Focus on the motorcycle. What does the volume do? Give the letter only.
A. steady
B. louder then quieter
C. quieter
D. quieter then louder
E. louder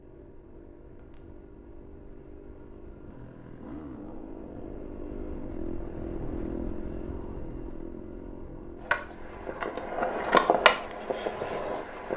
B.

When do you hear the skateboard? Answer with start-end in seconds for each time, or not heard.
8.8-12.1.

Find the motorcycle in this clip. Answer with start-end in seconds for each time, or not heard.
0.0-12.1.